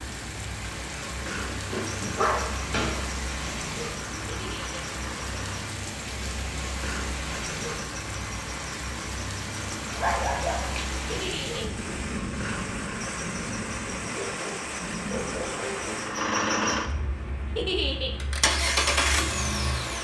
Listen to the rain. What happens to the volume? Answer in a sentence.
The volume of the rain stays about the same.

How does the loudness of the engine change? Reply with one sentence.
The volume of the engine goes up.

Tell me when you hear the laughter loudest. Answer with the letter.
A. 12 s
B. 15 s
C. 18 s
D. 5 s
C.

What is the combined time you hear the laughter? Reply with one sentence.
You can hear the laughter for 2 seconds altogether.